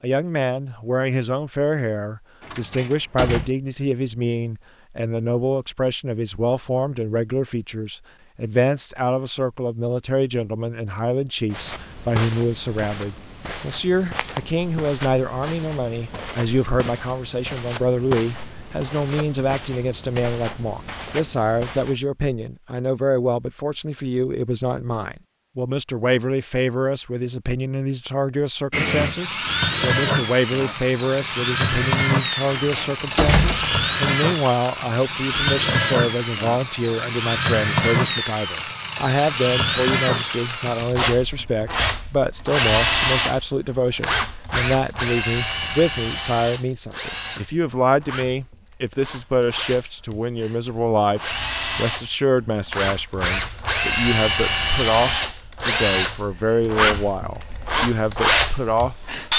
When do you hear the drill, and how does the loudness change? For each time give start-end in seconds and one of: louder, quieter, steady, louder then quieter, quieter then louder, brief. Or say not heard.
28.7-59.3 quieter then louder.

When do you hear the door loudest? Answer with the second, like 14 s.
33 s.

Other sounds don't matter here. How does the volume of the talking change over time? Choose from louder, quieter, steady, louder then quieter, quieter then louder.
steady.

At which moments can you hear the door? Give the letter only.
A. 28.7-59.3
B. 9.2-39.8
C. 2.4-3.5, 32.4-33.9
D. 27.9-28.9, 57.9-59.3
C.